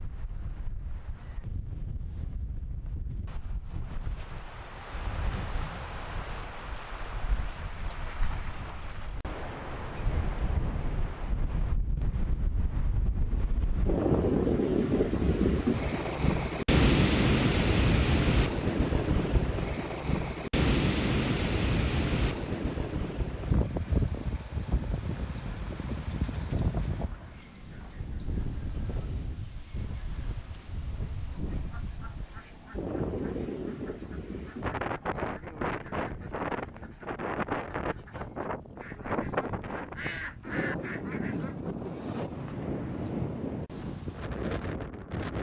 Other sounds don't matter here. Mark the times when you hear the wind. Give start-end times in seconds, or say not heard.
0.0-45.3.